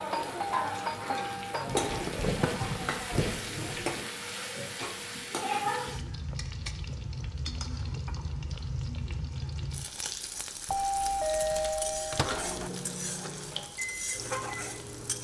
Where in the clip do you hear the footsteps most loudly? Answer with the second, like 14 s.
2 s.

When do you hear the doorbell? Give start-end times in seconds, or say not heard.
0.1-1.9, 10.7-12.7.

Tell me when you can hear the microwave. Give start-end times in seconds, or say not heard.
11.5-15.1.